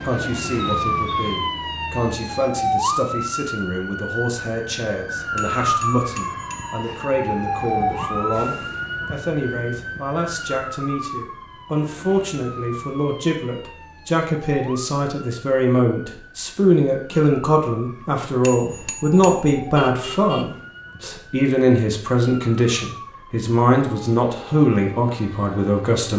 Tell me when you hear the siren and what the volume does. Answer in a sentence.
You can hear the siren from 0.0 to 26.1 s, getting quieter.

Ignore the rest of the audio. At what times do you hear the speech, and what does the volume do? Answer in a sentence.
You can hear the speech from 0.0 to 26.1 s, getting louder.